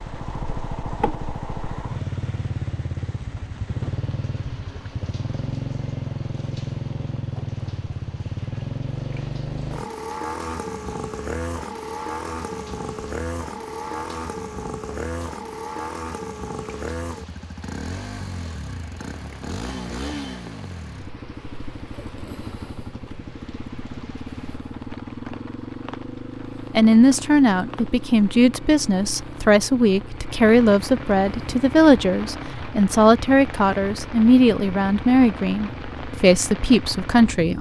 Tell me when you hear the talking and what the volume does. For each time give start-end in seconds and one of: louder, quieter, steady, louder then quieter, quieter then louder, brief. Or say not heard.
26.8-37.5 steady.